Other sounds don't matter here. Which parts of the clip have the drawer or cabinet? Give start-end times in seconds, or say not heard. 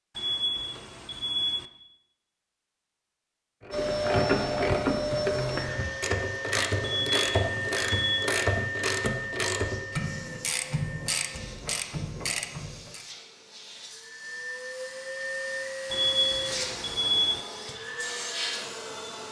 not heard.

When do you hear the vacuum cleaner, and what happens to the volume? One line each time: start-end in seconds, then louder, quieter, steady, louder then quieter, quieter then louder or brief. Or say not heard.
3.7-19.2 quieter then louder.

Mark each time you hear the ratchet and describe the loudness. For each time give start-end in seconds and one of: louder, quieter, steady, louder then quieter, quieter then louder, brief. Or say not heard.
3.6-13.1 quieter.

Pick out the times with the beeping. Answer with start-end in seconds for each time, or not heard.
0.1-1.6, 6.8-8.3, 15.9-17.4.